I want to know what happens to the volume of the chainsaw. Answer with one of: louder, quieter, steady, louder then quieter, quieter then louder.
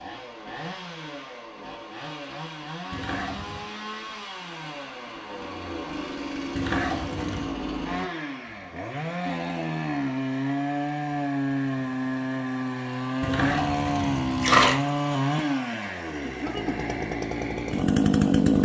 louder.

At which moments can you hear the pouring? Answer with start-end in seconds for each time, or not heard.
2.9-3.7, 6.5-7.6, 13.2-14.8.